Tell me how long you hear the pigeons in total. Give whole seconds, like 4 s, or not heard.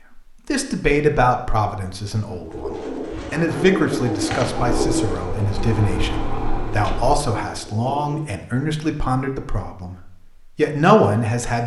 6 s.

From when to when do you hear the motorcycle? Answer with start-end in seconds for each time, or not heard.
4.5-7.2.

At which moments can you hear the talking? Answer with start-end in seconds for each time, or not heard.
0.1-11.6.